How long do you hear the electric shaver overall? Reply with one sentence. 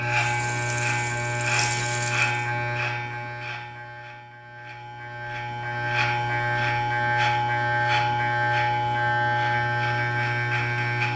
The electric shaver can be heard for 11 seconds in total.